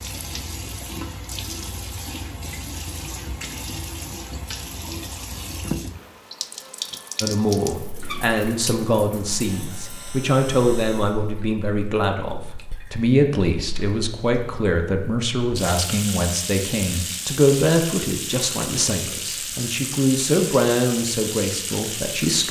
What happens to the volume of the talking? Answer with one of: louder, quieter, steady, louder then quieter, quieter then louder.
steady.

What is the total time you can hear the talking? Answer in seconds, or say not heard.
15 s.